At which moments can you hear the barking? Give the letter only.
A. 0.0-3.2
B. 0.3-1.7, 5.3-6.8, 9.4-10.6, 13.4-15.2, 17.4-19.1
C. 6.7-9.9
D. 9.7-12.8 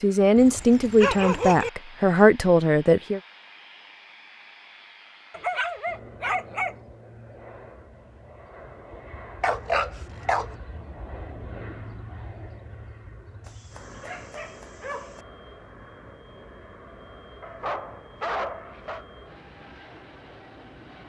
B.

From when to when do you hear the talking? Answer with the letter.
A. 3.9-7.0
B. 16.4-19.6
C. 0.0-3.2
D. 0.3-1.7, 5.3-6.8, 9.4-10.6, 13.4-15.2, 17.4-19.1
C.